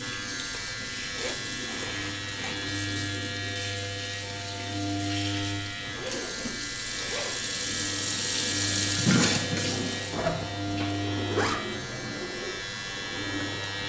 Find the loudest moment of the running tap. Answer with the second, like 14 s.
9 s.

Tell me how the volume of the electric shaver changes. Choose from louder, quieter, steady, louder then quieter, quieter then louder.
steady.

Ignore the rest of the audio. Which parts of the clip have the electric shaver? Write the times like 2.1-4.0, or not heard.
0.0-13.8.